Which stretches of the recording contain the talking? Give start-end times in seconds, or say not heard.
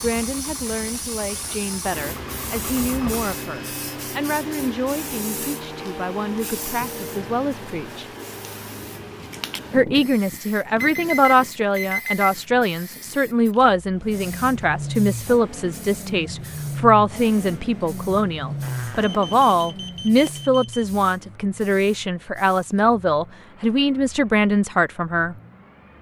0.0-8.1, 9.7-25.4.